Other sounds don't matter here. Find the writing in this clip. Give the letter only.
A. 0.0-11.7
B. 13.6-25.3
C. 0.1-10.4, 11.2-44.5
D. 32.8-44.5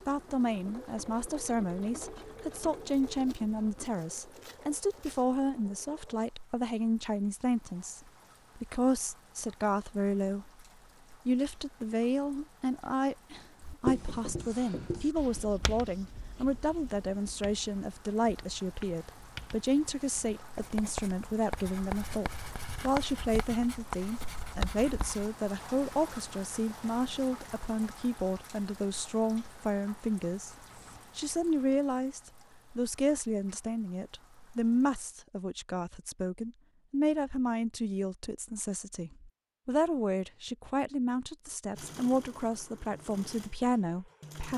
B.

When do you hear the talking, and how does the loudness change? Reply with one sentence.
You can hear the talking from 0.1 to 10.4 s, at a steady volume; and from 11.2 to 44.5 s, at a steady volume.